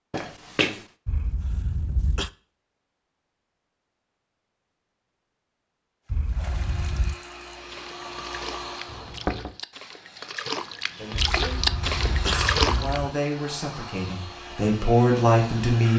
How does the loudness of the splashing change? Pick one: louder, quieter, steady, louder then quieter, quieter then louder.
louder.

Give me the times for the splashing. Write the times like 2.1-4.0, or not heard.
6.0-13.0.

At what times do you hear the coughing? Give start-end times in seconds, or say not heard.
1.1-2.3, 6.1-7.2, 11.1-13.1.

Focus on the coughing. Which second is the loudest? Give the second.
12 s.